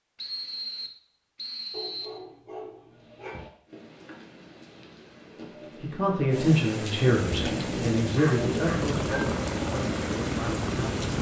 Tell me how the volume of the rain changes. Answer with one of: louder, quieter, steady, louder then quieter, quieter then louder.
louder.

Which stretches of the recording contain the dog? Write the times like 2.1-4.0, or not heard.
1.7-3.4, 7.0-9.3.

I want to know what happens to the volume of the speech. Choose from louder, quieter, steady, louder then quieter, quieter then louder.
quieter.